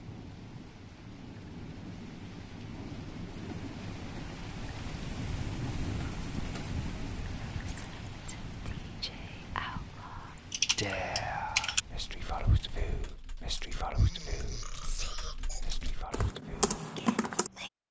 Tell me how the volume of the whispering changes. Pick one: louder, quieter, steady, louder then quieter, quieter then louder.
louder then quieter.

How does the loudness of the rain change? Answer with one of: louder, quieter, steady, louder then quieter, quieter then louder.
louder then quieter.